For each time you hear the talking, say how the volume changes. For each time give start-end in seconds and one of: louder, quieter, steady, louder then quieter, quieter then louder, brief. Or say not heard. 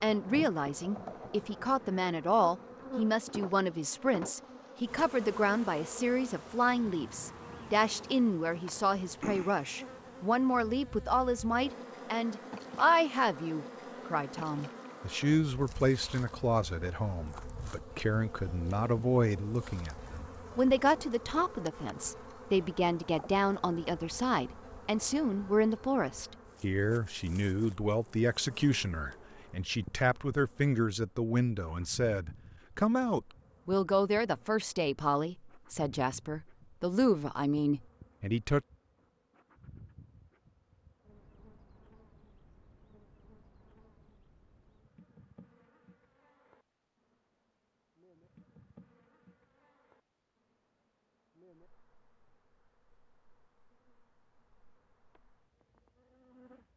0.0-38.6 steady.